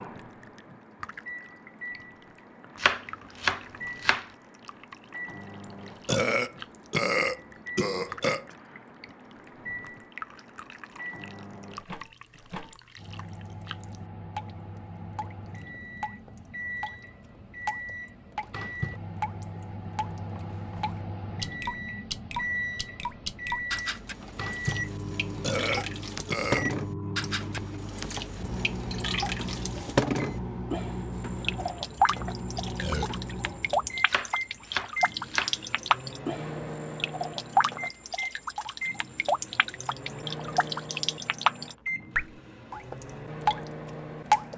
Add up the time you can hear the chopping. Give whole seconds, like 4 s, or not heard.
3 s.